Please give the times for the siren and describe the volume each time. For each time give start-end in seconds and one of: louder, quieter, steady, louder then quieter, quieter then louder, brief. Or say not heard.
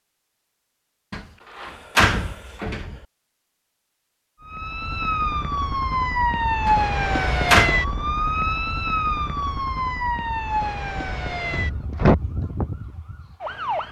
4.4-13.8 quieter.